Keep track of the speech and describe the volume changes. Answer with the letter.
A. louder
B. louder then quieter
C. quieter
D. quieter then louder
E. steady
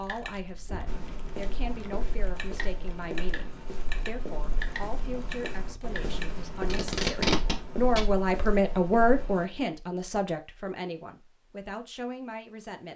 B.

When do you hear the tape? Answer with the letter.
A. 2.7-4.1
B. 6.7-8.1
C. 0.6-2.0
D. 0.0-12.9
B.